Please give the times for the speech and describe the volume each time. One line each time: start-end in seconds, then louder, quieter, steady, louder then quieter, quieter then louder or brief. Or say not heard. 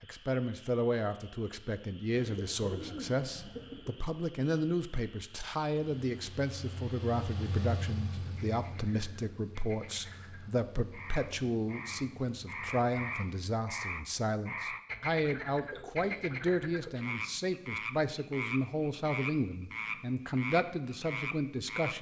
0.0-21.9 steady.